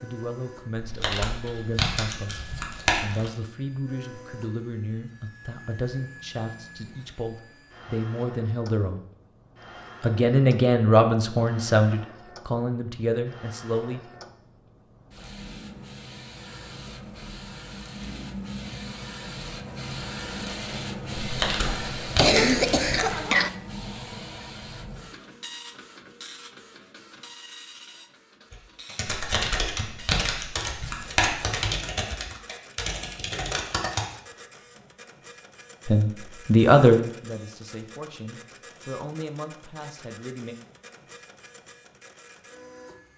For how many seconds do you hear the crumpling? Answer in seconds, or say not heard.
7 s.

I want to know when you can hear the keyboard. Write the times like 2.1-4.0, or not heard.
28.5-34.0.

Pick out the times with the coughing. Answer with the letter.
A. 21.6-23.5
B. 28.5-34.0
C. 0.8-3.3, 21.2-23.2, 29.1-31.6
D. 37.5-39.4
A.